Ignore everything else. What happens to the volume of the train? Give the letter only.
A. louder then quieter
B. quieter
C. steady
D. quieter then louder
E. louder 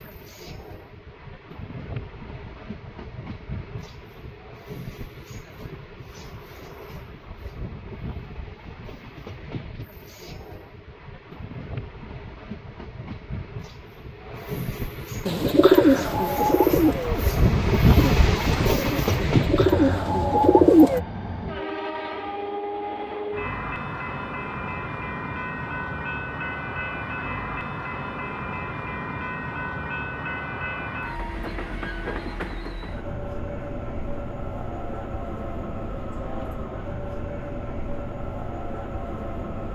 A.